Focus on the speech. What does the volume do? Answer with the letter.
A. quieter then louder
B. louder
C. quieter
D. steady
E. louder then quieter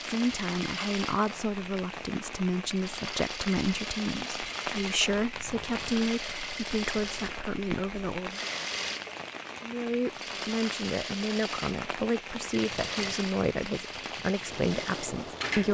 D.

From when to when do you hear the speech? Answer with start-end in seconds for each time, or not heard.
0.0-8.5, 9.6-15.6.